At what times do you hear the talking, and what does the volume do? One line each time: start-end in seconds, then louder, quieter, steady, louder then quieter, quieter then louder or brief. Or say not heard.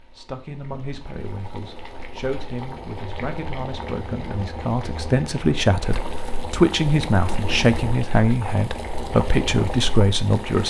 0.1-10.6 louder.